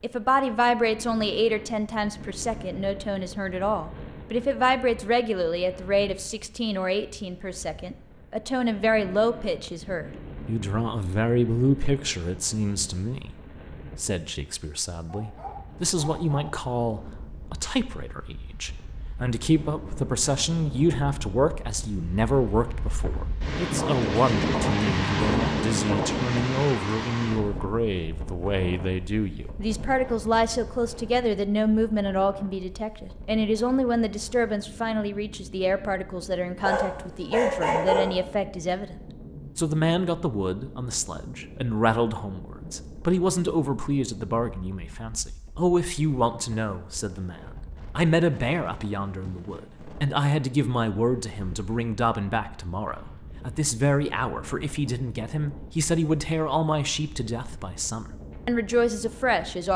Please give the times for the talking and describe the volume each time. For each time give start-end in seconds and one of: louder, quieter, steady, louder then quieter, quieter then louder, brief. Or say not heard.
0.0-59.7 steady.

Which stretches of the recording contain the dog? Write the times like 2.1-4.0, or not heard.
15.1-16.5, 36.6-38.2.